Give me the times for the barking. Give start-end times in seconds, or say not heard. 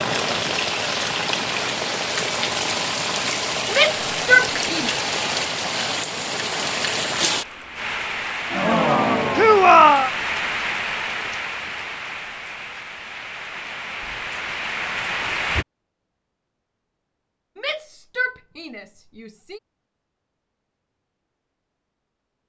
not heard.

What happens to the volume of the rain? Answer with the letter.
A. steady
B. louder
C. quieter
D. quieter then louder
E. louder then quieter
C.